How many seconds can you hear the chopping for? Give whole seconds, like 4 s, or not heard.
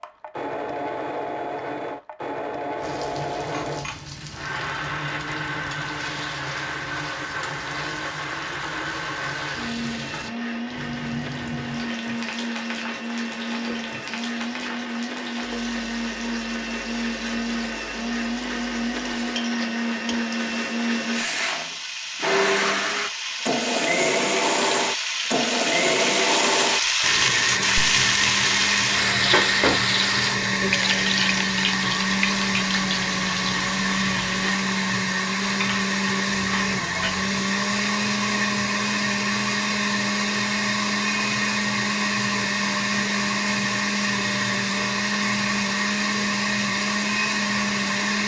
not heard.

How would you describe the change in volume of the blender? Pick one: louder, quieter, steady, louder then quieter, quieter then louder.
louder.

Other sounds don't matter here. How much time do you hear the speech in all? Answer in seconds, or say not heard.
not heard.